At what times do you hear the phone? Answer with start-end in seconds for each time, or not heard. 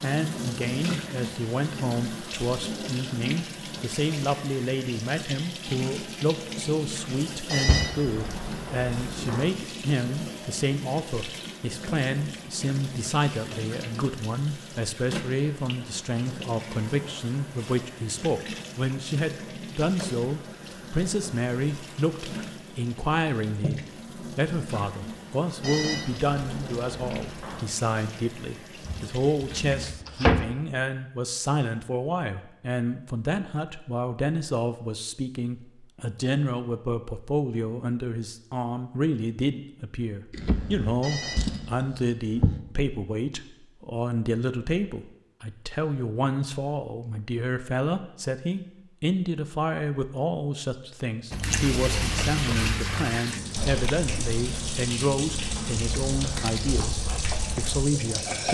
7.5-9.4, 25.6-27.6, 41.0-41.7.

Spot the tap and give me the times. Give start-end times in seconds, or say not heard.
0.0-29.9, 51.4-58.4.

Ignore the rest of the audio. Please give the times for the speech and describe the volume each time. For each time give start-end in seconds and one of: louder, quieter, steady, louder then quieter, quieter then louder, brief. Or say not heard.
0.0-58.4 steady.